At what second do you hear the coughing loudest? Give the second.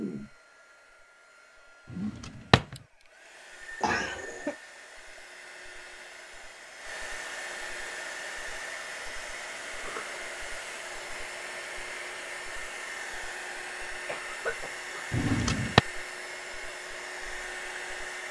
4 s.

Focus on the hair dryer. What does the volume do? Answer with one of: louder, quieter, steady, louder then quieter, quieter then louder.
louder.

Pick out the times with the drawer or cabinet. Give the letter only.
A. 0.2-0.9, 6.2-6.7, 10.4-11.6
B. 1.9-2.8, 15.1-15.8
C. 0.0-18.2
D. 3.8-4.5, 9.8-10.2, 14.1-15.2
B.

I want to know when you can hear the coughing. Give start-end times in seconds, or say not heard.
3.8-4.5, 9.8-10.2, 14.1-15.2.